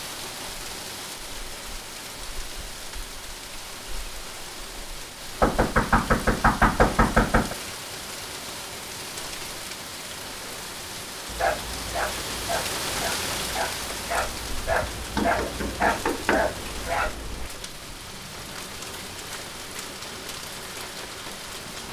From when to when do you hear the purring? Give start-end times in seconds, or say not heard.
not heard.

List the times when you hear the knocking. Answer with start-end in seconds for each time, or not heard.
5.4-7.5, 14.7-16.6.